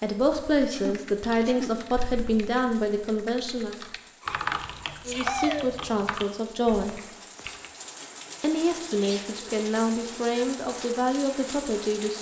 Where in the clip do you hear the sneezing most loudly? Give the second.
5 s.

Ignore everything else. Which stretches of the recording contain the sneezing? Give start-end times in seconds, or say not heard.
0.7-1.8, 4.2-5.7, 8.9-9.3.